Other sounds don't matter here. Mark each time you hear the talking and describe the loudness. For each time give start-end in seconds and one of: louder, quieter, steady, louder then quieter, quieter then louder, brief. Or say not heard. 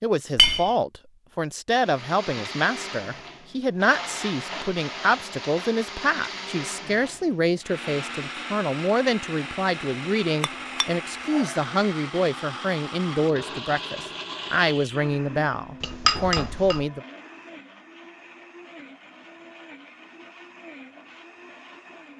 0.0-17.0 steady.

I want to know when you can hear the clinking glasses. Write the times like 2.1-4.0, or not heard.
0.3-0.8, 10.4-11.6, 15.8-16.9.